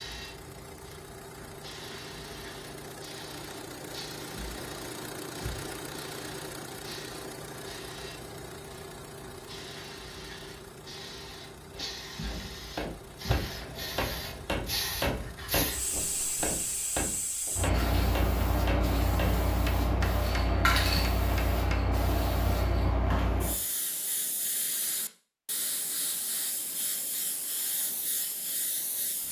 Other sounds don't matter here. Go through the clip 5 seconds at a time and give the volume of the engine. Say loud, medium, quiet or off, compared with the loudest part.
loud, loud, medium, medium, off, off.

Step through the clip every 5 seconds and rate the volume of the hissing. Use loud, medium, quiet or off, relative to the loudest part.
quiet, quiet, medium, loud, loud, medium.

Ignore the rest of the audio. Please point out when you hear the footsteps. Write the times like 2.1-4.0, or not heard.
not heard.